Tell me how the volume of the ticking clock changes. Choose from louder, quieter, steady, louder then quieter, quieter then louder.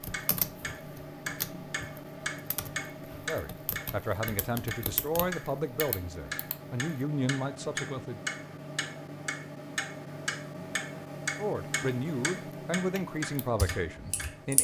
steady.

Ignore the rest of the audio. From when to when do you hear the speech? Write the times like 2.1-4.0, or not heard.
3.2-8.2, 11.3-14.5.